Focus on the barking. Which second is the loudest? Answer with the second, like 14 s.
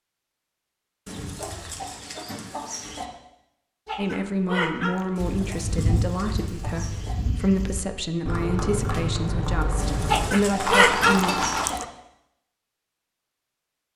11 s.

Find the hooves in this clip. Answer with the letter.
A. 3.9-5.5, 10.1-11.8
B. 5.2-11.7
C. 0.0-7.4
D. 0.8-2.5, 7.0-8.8
B.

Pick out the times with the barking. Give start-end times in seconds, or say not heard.
3.9-5.5, 10.1-11.8.